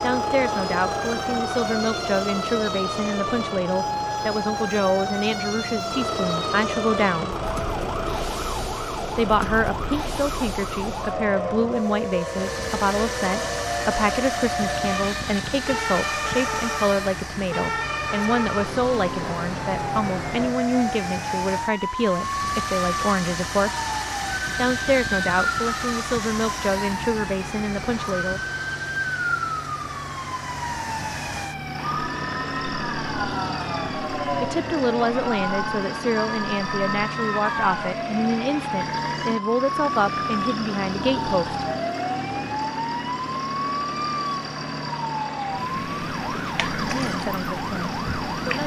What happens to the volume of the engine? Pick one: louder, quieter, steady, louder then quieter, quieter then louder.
steady.